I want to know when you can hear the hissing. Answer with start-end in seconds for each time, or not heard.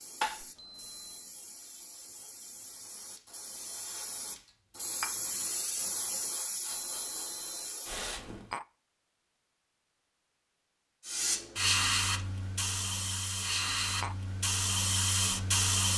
0.0-8.6, 11.1-15.9.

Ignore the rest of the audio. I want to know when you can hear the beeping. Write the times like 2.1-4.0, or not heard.
0.6-1.4, 6.7-7.8, 13.5-14.1.